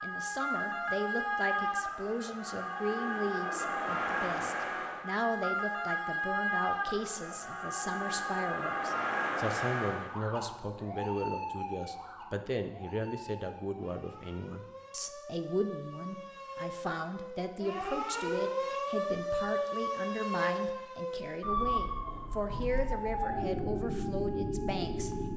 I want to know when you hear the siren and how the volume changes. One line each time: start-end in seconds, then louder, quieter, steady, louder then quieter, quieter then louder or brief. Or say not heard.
0.0-25.3 quieter then louder.